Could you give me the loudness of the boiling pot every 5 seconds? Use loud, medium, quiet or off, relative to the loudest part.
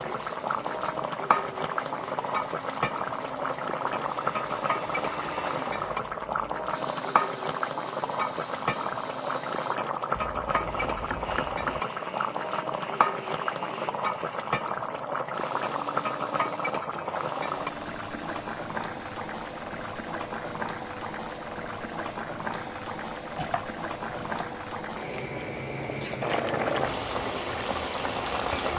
loud, loud, loud, loud, medium, loud.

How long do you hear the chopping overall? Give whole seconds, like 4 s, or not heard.
3 s.